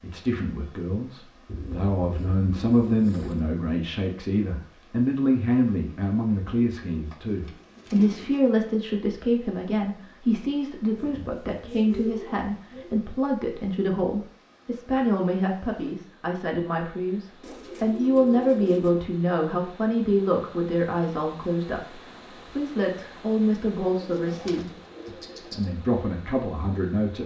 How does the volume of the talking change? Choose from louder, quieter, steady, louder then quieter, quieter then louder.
steady.